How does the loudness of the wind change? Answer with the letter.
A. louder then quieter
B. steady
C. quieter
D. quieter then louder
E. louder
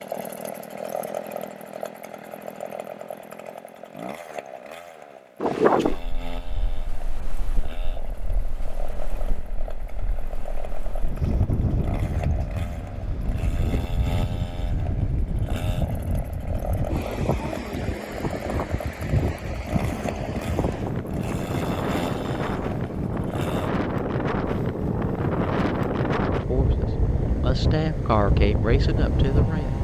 E.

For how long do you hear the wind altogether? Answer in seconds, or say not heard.
24 s.